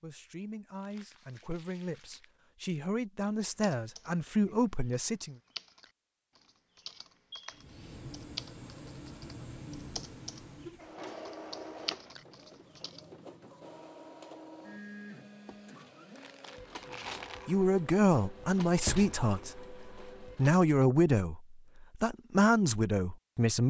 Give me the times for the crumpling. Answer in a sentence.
You can hear the crumpling from 0.8 to 2.4 s and from 15.4 to 17.4 s.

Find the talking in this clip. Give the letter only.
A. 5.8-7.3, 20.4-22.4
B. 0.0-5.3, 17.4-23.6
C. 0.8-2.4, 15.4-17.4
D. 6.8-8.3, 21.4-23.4
B.